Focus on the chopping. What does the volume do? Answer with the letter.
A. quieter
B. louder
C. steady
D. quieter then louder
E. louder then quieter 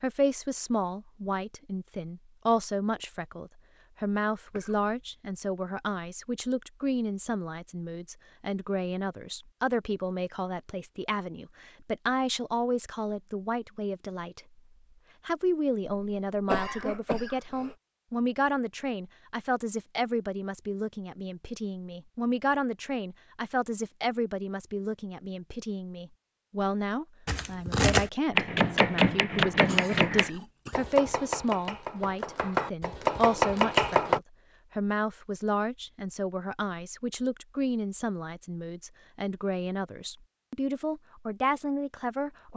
D.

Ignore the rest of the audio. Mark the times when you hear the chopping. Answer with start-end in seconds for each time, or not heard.
27.2-34.2.